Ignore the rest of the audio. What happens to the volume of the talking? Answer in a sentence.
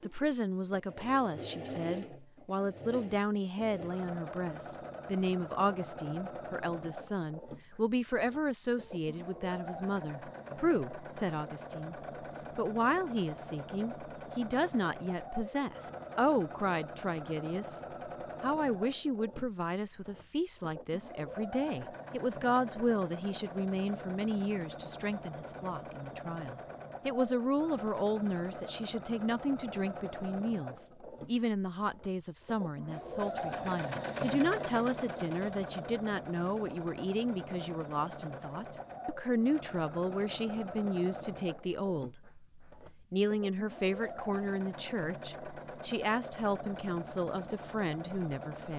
The volume of the talking stays about the same.